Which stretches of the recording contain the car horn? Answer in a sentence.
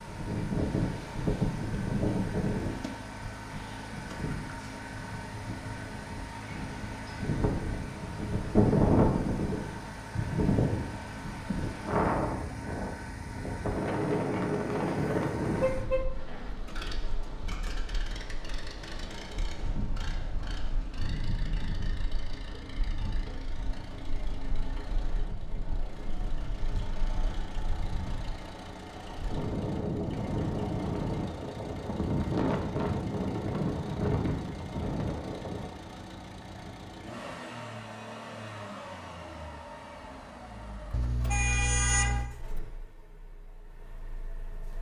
You can hear the car horn from 15.2 to 16.1 s and from 40.9 to 42.3 s.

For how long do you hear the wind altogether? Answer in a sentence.
You can hear the wind for 36 seconds altogether.